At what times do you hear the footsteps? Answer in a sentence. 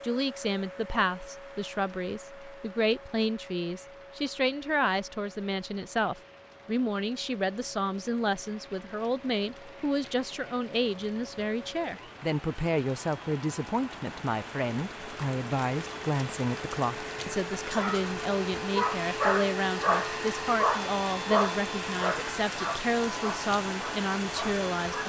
You can't hear the footsteps here.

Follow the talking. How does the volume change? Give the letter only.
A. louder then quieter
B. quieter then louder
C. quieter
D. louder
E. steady
E.